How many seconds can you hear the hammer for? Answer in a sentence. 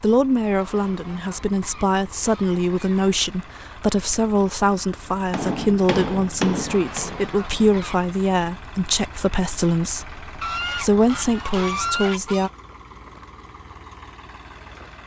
You can hear the hammer for 3 seconds altogether.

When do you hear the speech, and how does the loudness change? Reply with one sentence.
You can hear the speech from 0.0 to 12.5 s, at a steady volume.